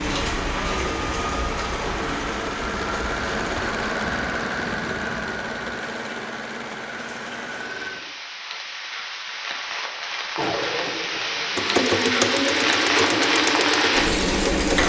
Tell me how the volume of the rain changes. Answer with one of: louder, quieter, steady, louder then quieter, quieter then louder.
quieter then louder.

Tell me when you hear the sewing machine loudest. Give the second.
12 s.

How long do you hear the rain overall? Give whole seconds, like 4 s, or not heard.
15 s.